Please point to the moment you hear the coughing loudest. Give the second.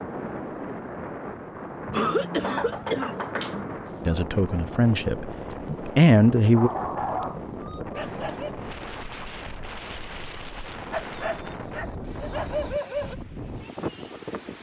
2 s.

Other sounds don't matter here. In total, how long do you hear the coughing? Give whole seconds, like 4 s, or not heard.
2 s.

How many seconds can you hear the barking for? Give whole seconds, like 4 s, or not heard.
4 s.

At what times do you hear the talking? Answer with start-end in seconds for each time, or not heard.
4.0-6.7.